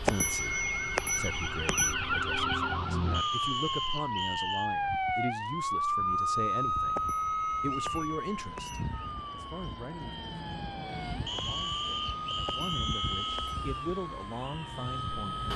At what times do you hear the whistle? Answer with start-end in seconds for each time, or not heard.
3.1-4.7, 11.2-13.6.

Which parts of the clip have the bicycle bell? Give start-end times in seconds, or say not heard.
0.1-1.9, 7.0-8.8, 12.4-13.6.